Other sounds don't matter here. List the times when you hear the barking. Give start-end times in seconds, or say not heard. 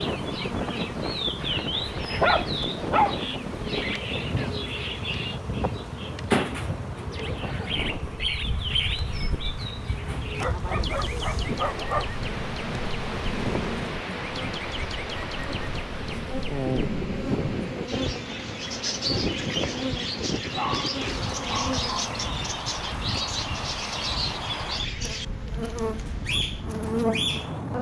1.4-3.4, 10.3-12.1, 20.6-22.1.